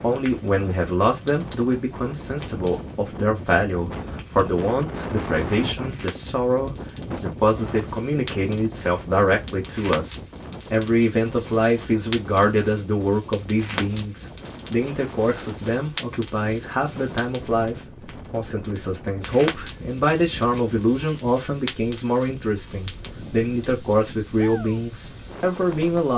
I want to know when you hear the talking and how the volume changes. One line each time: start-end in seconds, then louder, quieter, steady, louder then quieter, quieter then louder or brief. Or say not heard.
0.0-26.1 steady.